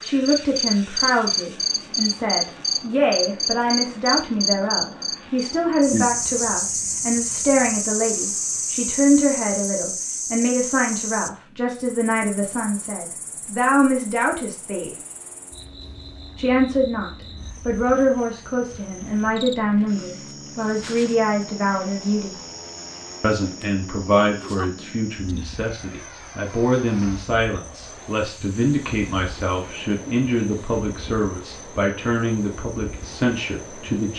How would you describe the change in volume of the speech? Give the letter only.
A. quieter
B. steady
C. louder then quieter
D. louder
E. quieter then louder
B.